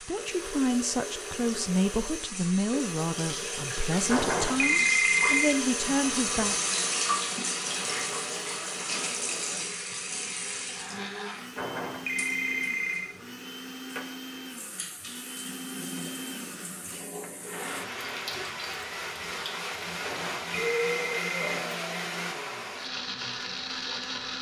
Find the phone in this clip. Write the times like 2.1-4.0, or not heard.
4.0-5.5, 11.6-13.1, 20.0-21.6.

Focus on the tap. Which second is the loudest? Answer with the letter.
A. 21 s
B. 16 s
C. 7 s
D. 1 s
C.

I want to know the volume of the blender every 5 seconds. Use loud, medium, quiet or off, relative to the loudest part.
medium, medium, medium, loud, loud.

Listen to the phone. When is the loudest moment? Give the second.
5 s.